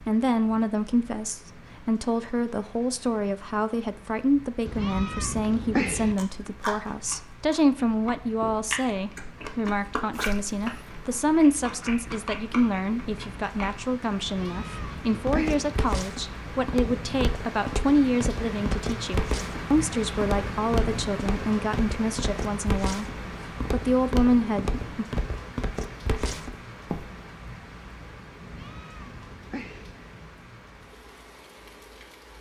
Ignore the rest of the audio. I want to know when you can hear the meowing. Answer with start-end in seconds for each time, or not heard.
4.7-6.2, 14.2-15.8, 28.4-29.9.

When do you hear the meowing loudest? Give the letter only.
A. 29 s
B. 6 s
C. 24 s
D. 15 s
B.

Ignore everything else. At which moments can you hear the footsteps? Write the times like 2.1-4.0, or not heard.
15.1-27.1.